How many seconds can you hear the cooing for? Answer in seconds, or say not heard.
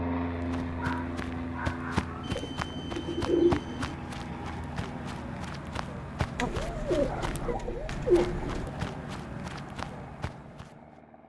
4 s.